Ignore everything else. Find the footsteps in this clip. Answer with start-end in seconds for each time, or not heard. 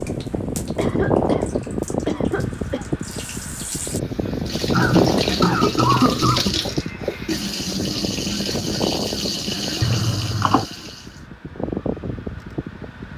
not heard.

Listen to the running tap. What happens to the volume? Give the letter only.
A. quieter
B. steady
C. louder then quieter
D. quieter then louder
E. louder
E.